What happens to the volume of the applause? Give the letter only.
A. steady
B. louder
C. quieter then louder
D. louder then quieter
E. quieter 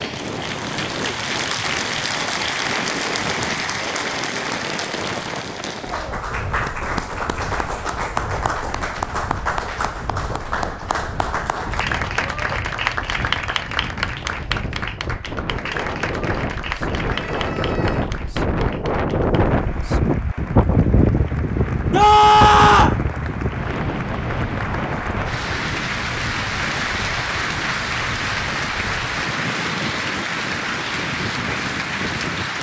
C.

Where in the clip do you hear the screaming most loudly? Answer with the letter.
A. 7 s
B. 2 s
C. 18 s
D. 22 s
D.